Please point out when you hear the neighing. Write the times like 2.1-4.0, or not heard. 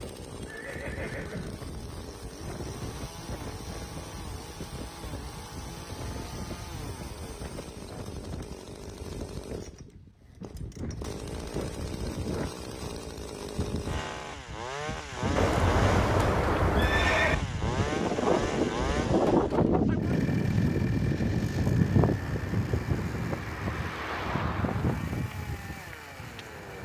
0.5-1.6, 15.3-17.4.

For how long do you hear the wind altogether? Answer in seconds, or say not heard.
27 s.